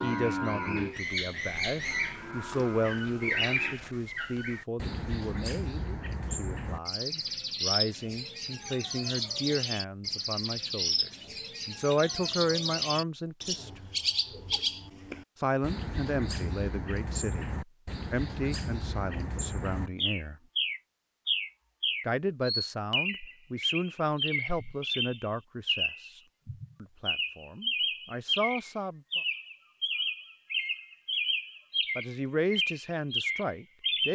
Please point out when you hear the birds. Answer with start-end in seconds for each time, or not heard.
0.0-34.1.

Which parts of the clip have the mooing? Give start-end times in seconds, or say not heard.
0.0-3.8.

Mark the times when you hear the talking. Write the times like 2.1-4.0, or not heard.
0.0-13.9, 15.4-17.5, 18.1-20.4, 22.1-26.2, 26.8-29.2, 31.9-34.1.